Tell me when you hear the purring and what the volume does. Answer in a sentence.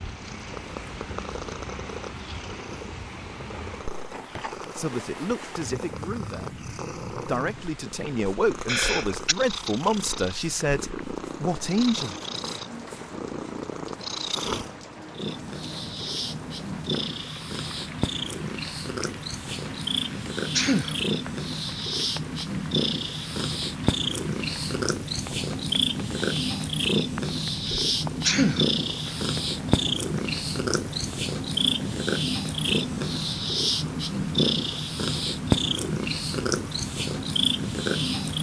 You can hear the purring from 0.0 to 38.3 s, getting louder.